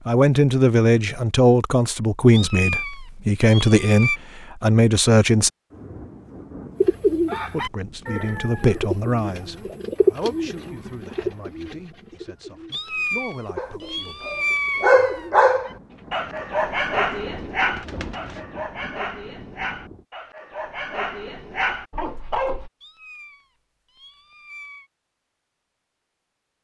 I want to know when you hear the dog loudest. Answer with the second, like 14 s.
15 s.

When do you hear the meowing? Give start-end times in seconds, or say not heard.
2.3-4.2, 12.7-15.3, 22.8-24.9.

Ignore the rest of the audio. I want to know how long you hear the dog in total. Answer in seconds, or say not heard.
9 s.